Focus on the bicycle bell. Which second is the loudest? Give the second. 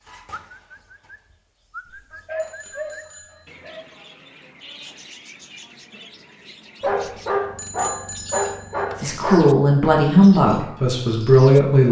8 s.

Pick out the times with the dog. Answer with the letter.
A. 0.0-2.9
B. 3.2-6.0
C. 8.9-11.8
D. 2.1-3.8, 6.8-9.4
D.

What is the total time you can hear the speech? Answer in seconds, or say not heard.
3 s.